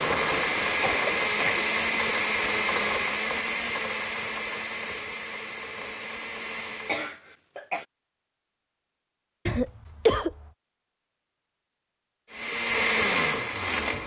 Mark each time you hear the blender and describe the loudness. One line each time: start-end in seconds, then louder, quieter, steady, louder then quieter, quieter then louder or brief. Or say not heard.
0.0-7.2 quieter
12.3-14.0 brief.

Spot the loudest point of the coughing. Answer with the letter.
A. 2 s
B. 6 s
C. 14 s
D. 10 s
D.